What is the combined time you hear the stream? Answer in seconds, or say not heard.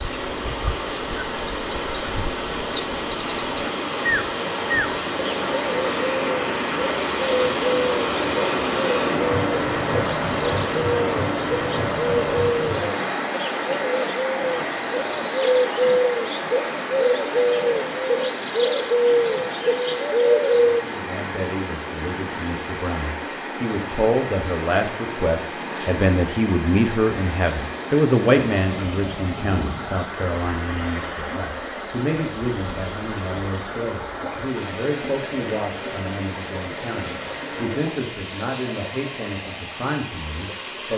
41 s.